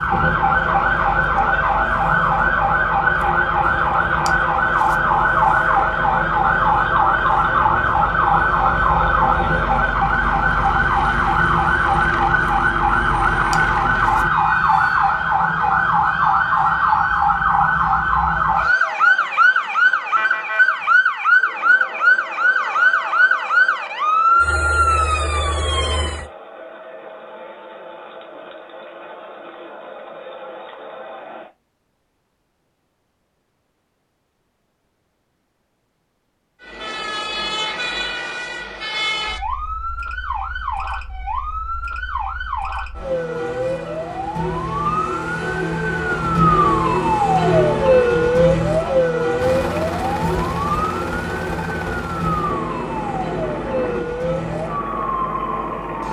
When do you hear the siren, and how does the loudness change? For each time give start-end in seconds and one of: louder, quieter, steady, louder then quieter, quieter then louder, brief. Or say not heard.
0.0-26.2 steady
36.6-56.0 louder then quieter.